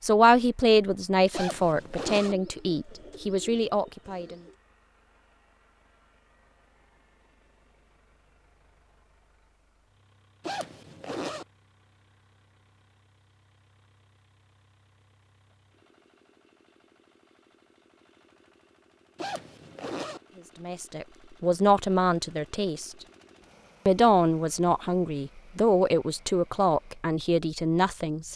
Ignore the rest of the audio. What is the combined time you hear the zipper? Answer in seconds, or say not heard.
3 s.